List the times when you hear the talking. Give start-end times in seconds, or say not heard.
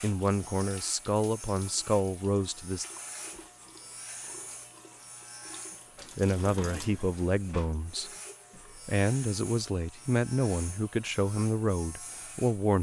0.0-2.9, 6.2-8.1, 8.8-12.7.